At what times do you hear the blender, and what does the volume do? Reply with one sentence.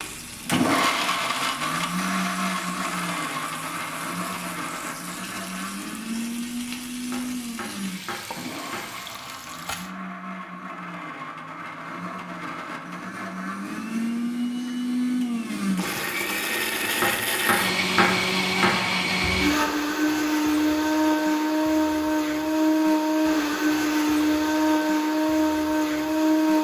You can hear the blender from 0.0 to 26.6 s, getting quieter then louder.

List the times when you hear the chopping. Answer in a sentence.
The chopping can be heard from 7.0 to 9.2 s and from 16.9 to 18.9 s.